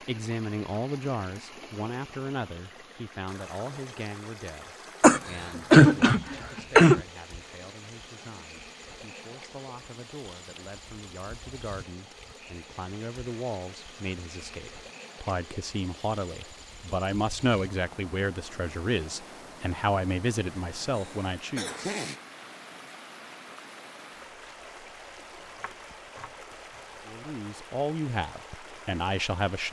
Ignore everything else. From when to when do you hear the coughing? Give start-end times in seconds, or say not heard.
5.0-7.0, 20.9-22.2.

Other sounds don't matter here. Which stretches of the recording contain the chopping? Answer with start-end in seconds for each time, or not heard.
25.4-26.9.